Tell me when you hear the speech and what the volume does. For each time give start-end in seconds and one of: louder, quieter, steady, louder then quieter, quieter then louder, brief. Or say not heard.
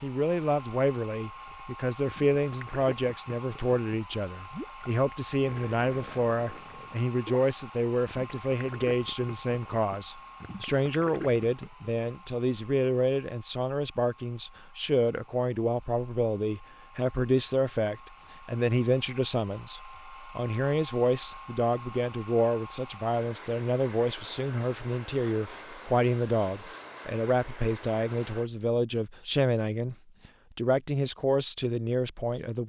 0.0-32.6 steady.